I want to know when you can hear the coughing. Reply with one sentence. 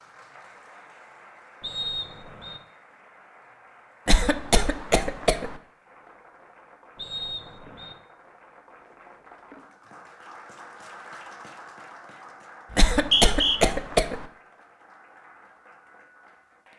You can hear the coughing from 4.0 to 5.5 s and from 12.8 to 14.2 s.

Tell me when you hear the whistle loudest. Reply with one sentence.
The volume of the whistle peaks at 13 seconds.